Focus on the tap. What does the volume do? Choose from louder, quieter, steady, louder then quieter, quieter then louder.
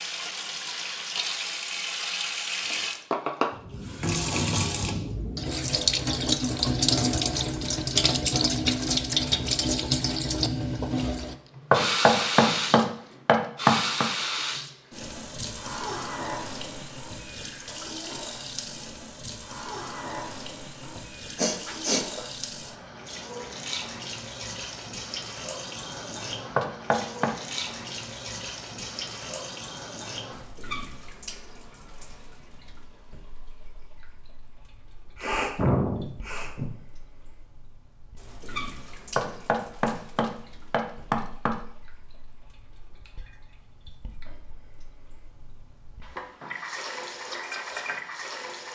quieter.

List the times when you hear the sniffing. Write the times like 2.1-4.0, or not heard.
21.4-22.2, 35.1-36.7.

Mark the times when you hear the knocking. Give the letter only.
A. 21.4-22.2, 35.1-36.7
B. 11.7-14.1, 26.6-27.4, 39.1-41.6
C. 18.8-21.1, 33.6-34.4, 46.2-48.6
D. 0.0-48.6
B.